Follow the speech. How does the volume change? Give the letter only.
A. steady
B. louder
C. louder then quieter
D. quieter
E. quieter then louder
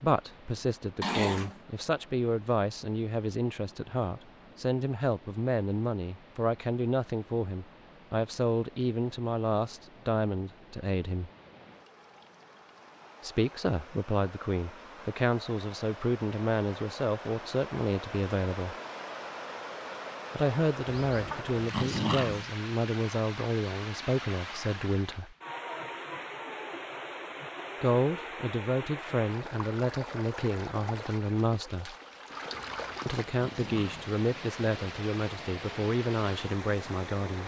A.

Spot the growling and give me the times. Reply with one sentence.
You can hear the growling from 1.0 to 1.6 s, from 20.9 to 22.4 s and from 32.5 to 34.1 s.